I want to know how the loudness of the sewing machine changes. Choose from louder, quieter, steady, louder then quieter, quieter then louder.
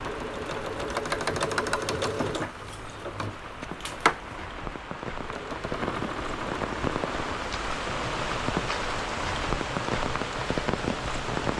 quieter.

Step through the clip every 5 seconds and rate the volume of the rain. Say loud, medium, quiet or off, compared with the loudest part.
medium, loud, loud.